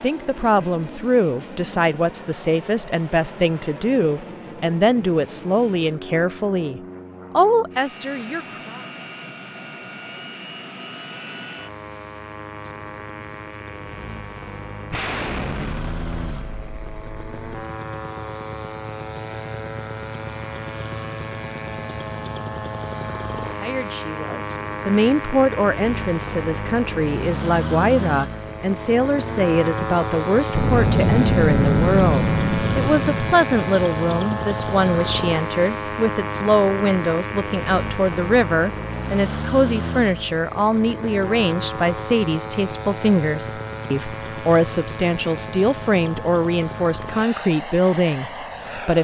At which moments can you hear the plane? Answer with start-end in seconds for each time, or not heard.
0.0-48.9.